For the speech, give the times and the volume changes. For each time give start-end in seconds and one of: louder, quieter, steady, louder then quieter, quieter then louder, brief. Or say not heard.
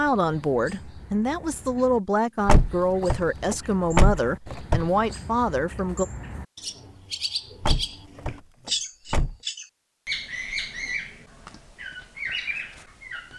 0.0-6.0 steady.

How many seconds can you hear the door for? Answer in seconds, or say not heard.
4 s.